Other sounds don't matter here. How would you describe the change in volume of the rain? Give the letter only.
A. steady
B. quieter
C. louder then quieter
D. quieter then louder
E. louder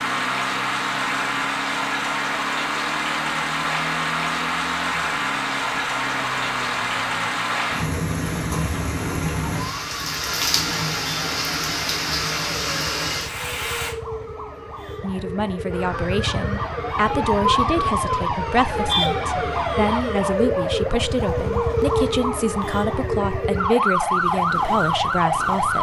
A.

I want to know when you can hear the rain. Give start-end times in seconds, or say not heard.
0.0-13.9.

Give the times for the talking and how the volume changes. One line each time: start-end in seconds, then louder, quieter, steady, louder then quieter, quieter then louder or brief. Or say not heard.
15.0-25.7 steady.